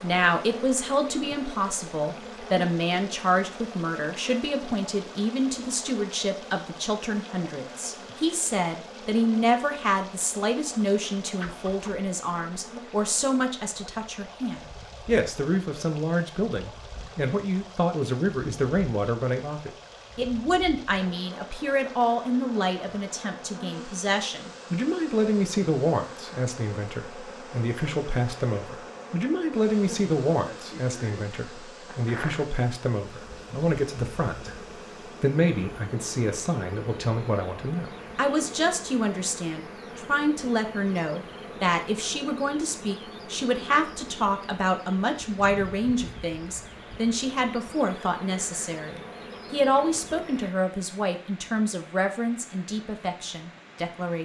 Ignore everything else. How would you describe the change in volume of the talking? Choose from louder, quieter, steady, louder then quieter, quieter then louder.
steady.